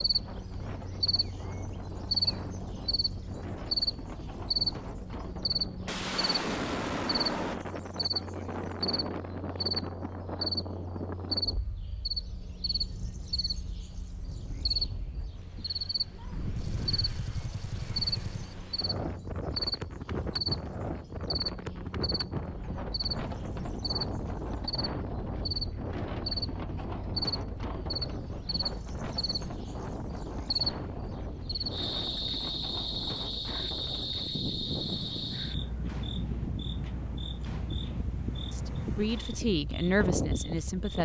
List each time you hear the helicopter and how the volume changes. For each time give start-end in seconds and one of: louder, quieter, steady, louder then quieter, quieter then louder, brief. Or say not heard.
not heard.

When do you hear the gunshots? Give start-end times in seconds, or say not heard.
5.8-7.5, 16.6-18.6, 34.6-39.4.